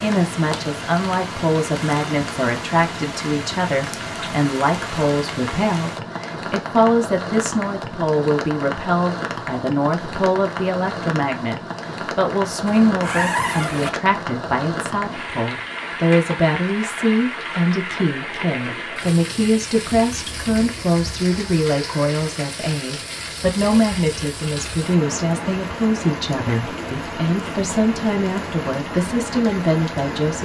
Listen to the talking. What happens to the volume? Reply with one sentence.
The loudness of the talking stays about the same.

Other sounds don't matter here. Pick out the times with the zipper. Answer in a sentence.
You can hear the zipper from 12.7 to 13.9 s.